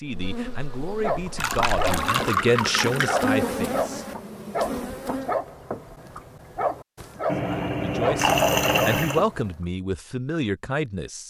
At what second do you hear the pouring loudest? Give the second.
8 s.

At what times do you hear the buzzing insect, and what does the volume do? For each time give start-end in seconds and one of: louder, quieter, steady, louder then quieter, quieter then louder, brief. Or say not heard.
0.0-5.3 louder then quieter.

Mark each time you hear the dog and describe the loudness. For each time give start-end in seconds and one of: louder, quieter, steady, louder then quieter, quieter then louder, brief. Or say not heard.
1.0-9.6 steady.